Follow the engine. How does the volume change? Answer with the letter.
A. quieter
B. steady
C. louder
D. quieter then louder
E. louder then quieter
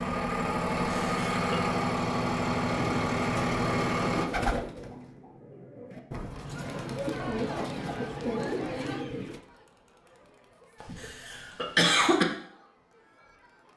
B.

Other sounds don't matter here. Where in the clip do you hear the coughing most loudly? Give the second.
12 s.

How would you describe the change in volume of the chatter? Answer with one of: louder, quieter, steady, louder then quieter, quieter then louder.
quieter.